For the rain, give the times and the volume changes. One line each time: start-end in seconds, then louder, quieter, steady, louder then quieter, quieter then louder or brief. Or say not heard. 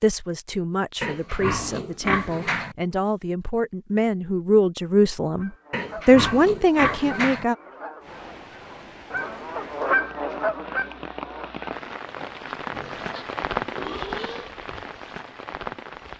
8.0-16.1 louder then quieter.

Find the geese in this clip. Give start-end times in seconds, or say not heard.
5.3-11.7.